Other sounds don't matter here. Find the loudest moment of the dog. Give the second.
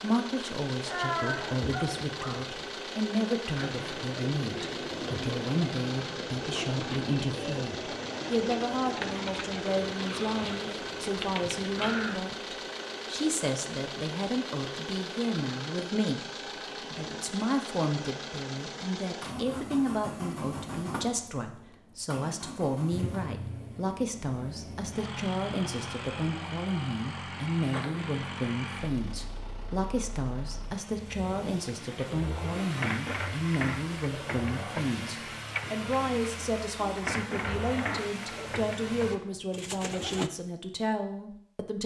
1 s.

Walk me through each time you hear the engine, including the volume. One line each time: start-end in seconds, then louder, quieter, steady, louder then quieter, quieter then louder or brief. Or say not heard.
0.0-39.2 steady.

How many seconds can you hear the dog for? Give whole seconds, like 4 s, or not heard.
2 s.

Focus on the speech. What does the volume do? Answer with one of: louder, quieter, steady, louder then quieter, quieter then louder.
steady.